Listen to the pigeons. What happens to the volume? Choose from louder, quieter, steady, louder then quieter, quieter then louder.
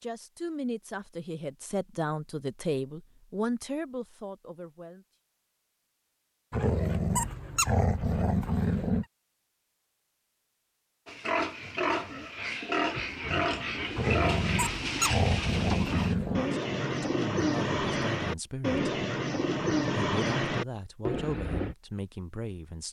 louder.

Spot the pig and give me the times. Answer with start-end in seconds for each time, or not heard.
11.1-16.1.